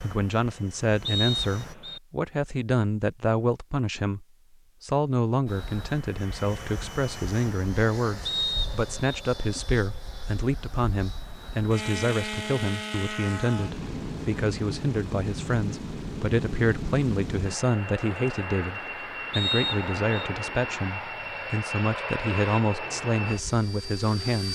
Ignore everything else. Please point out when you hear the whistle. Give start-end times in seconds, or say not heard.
1.1-2.0, 8.2-9.2, 19.3-20.3.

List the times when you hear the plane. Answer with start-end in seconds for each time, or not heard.
0.0-1.8, 5.5-24.5.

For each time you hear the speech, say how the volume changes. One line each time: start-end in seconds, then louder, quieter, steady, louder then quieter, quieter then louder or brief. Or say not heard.
0.0-24.5 steady.